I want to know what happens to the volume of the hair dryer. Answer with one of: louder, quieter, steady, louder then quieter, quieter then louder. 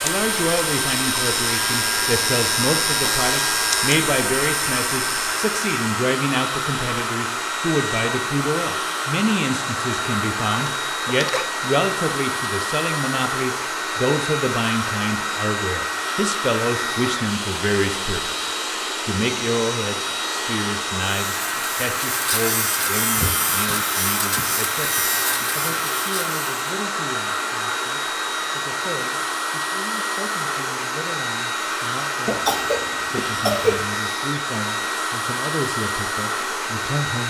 steady.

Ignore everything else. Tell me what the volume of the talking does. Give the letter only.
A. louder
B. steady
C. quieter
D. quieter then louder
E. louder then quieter
C.